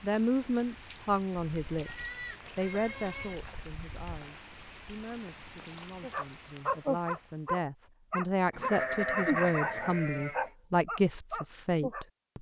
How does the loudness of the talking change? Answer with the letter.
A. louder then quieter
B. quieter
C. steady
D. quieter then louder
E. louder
D.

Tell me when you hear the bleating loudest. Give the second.
9 s.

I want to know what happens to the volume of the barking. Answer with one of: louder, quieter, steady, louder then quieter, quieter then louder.
quieter.